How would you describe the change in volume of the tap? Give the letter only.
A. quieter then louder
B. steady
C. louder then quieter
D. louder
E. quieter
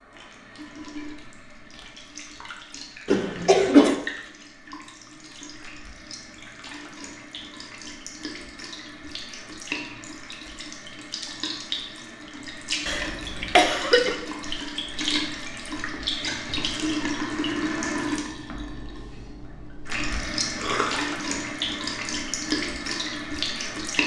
D.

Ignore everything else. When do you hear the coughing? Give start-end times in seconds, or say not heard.
3.0-4.0, 12.8-14.2, 20.6-21.1.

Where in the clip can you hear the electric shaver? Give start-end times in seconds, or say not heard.
not heard.